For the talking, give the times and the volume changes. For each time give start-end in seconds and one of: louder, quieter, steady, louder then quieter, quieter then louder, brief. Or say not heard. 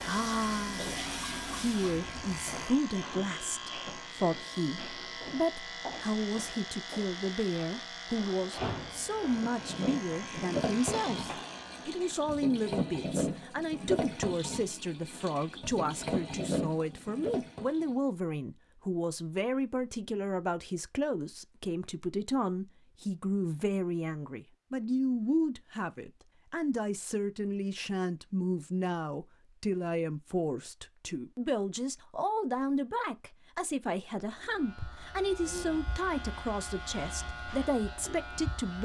0.0-38.8 steady.